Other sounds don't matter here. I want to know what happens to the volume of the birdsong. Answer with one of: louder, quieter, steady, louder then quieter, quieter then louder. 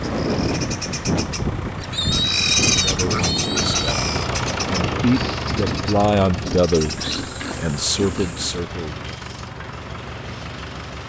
louder then quieter.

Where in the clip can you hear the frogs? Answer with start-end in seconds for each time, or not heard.
not heard.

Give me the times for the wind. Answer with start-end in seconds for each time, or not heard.
0.0-6.8.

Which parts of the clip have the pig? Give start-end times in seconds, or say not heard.
1.9-4.0, 6.8-8.6.